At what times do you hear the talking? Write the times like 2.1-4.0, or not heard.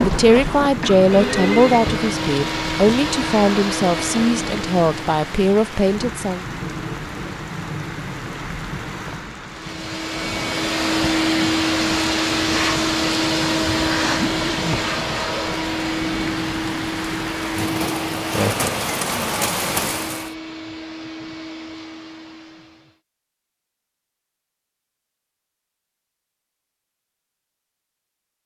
0.0-6.5.